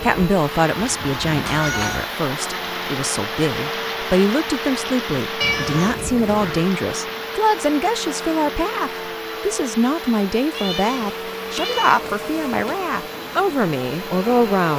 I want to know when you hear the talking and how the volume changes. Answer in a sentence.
You can hear the talking from 0.0 to 14.7 s, at a steady volume.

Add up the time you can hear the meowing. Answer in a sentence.
The meowing can be heard for 5 seconds in total.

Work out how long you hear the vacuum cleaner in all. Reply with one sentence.
You can hear the vacuum cleaner for 15 seconds altogether.